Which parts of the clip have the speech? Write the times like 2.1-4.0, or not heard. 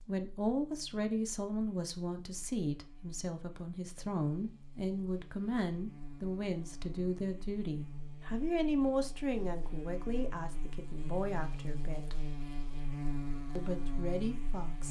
0.0-12.2, 13.6-14.8.